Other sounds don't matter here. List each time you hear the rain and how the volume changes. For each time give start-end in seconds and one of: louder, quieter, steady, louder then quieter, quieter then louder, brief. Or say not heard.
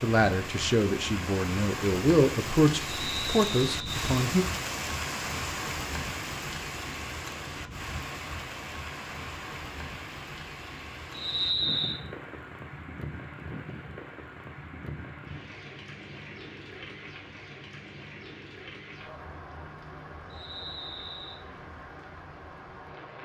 0.0-23.2 quieter.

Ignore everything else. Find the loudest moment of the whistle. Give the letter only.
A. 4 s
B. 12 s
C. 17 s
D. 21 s
B.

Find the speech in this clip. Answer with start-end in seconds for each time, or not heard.
0.0-4.5.